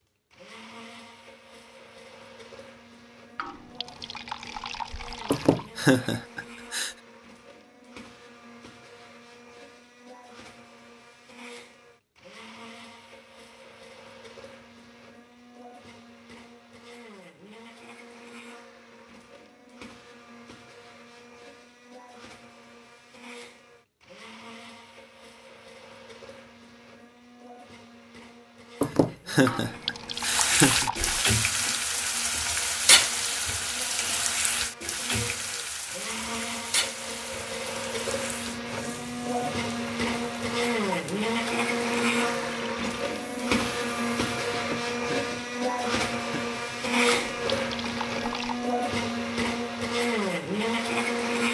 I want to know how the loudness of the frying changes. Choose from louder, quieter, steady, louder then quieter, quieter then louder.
quieter.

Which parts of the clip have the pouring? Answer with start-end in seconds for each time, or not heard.
3.4-5.7, 29.4-31.3, 47.1-48.6.